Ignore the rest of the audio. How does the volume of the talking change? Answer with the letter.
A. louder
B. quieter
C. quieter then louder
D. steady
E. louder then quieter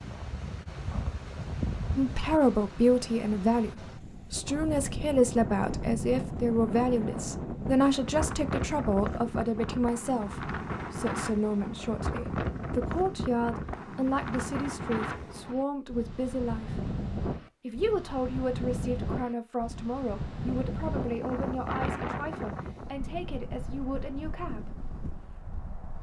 B.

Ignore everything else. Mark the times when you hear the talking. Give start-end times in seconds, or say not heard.
1.9-16.8, 17.6-24.9.